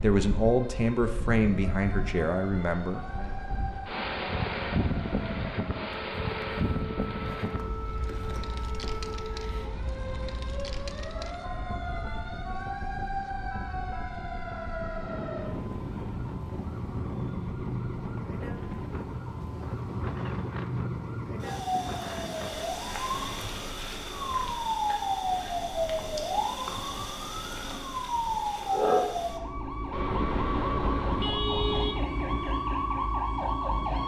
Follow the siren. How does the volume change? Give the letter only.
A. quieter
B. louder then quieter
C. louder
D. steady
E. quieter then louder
C.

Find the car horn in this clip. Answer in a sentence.
You can hear the car horn from 29.9 to 31.9 s.